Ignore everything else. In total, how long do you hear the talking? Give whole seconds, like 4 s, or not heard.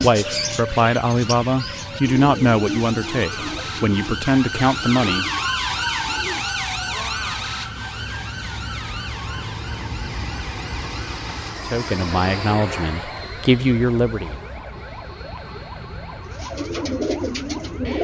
8 s.